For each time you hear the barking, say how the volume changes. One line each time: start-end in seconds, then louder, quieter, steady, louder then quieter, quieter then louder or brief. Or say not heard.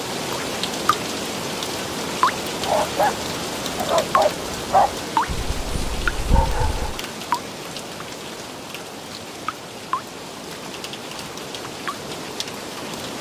2.6-7.0 quieter then louder.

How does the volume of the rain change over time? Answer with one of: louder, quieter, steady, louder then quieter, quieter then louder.
quieter.